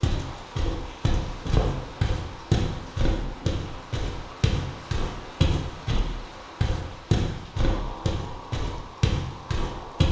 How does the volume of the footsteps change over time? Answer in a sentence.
The loudness of the footsteps stays about the same.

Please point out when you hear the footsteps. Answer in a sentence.
You can hear the footsteps from 0.0 to 6.0 s and from 6.6 to 10.0 s.